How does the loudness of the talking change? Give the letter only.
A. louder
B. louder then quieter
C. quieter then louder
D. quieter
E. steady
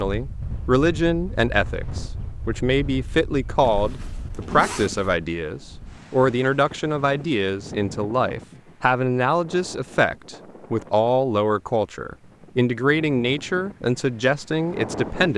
E.